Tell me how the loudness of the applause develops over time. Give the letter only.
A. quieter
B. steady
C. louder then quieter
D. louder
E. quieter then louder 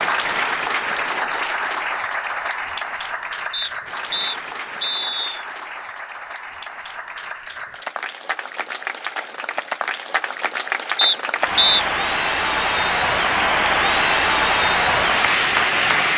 E.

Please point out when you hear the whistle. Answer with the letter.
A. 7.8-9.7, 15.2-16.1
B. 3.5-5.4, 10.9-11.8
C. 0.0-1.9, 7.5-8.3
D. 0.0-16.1
B.